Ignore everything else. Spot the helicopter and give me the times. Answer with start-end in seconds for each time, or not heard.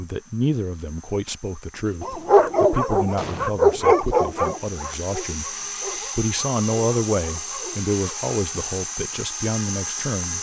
0.0-10.3.